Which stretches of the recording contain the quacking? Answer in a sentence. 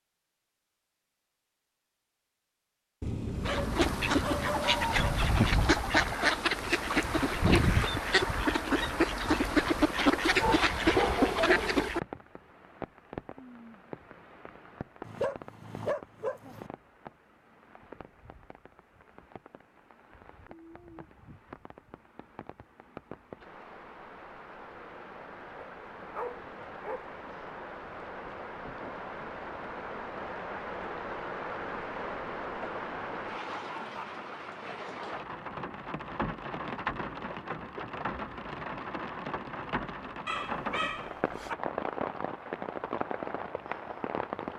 You can hear the quacking from 3.3 to 12.0 s.